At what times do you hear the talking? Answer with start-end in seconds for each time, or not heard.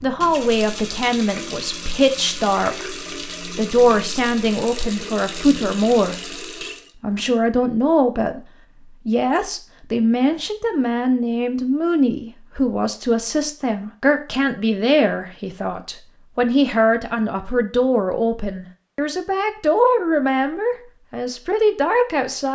0.0-6.2, 7.0-8.4, 9.1-22.5.